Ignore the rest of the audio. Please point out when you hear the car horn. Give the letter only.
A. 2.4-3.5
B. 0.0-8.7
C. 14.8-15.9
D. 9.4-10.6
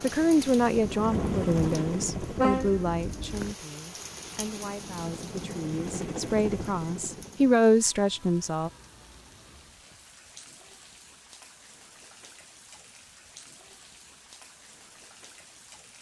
A.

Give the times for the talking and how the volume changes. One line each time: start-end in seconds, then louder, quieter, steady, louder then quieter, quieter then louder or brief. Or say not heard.
0.0-8.7 quieter then louder.